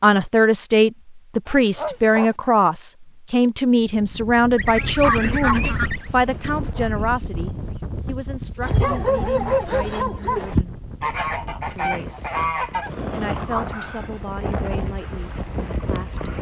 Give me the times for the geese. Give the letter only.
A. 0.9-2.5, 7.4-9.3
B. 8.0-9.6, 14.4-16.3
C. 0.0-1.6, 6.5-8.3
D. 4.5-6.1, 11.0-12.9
D.